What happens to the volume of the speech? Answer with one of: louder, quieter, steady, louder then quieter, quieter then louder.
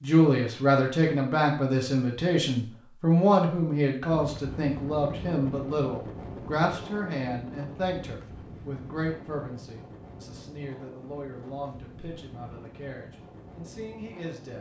quieter.